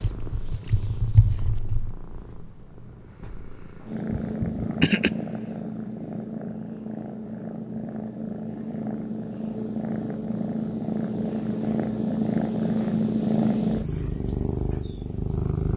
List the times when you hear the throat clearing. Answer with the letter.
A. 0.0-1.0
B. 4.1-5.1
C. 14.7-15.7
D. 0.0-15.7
B.